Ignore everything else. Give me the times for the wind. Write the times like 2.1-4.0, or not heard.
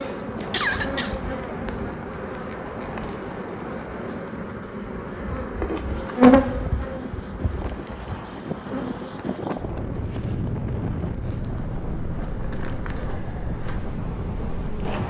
0.2-15.0.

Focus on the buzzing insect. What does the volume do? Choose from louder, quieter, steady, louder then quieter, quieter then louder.
louder then quieter.